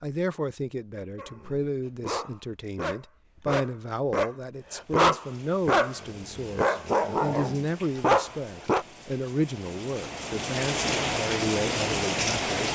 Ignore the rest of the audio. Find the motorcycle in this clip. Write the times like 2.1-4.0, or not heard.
not heard.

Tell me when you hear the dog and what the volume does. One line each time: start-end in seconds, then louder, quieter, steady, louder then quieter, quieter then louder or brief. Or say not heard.
1.1-8.8 louder.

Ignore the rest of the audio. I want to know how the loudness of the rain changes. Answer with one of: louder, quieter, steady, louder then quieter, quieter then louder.
louder.